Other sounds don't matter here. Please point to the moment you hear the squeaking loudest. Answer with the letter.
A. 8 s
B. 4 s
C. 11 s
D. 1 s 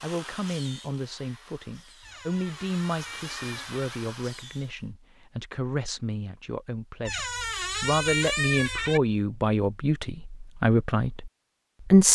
A.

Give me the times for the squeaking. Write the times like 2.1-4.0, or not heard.
2.0-4.0, 7.0-9.0.